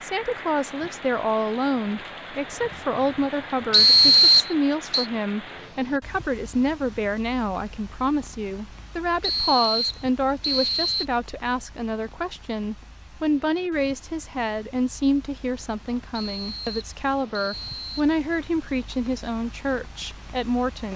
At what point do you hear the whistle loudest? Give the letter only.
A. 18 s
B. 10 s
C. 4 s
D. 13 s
C.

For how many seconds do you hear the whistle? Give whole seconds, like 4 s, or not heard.
5 s.